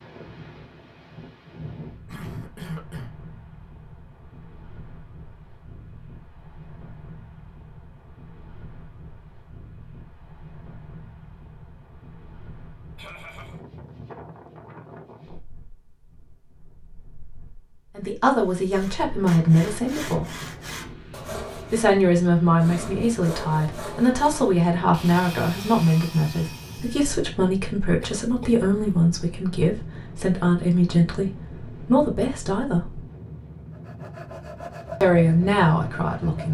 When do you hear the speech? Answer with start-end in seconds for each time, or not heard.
17.9-20.2, 21.7-33.0, 35.0-36.4.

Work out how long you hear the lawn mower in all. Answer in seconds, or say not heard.
not heard.